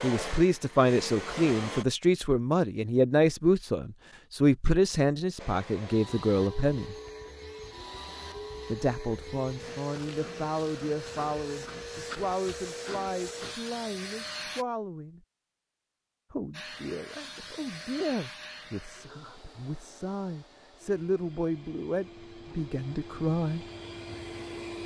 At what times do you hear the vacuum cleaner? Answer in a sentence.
You can hear the vacuum cleaner from 0.0 to 1.9 s, from 5.3 to 14.7 s and from 16.5 to 24.8 s.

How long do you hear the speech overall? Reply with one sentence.
You can hear the speech for 21 seconds altogether.